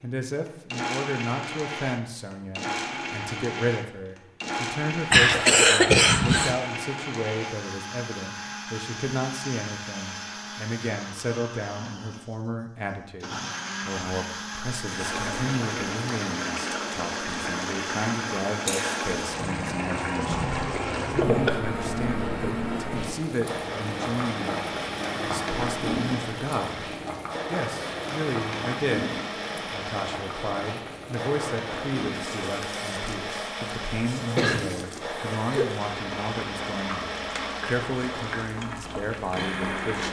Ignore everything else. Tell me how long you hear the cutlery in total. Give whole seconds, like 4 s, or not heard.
not heard.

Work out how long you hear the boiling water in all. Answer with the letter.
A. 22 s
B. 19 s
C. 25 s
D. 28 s
C.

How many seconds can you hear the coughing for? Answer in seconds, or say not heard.
4 s.